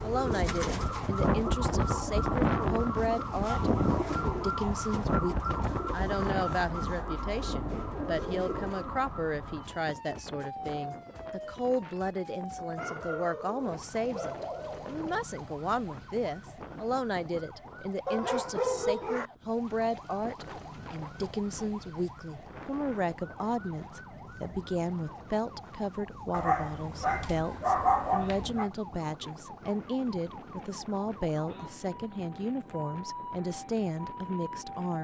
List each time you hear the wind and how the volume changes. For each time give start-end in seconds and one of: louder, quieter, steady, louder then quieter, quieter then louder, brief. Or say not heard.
0.0-34.9 quieter.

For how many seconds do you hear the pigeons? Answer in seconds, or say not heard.
9 s.